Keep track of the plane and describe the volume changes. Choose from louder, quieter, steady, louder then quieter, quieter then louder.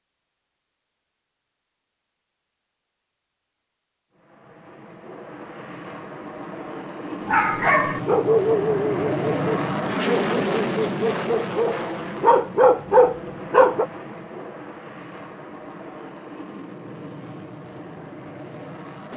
louder then quieter.